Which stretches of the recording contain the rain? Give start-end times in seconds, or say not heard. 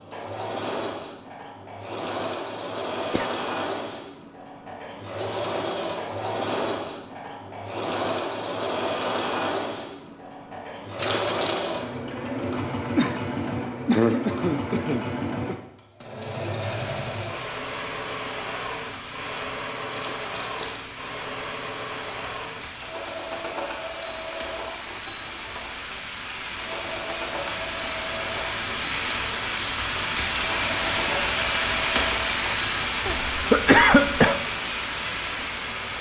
16.6-35.9.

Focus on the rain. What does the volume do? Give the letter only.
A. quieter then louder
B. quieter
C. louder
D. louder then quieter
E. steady
C.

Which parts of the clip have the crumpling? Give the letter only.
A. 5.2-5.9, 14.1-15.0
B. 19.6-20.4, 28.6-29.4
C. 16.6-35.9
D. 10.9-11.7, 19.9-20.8
D.